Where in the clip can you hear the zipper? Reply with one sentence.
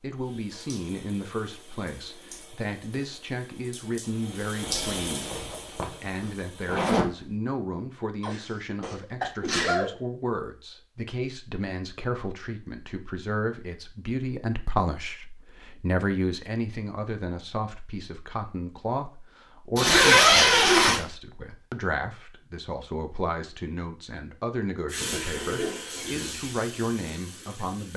The zipper can be heard from 4.6 to 7.1 s and from 19.8 to 21.0 s.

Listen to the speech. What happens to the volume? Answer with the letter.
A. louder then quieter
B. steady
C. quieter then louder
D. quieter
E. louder
B.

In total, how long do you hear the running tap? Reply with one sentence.
The running tap can be heard for 10 seconds in total.